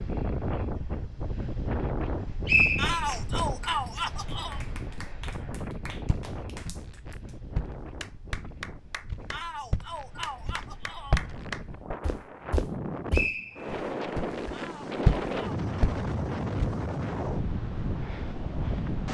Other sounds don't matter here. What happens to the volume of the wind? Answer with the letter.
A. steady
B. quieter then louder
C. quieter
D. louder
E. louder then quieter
B.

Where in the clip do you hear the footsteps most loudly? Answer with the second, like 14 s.
15 s.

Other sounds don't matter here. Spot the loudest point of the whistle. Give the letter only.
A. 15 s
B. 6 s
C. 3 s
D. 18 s
C.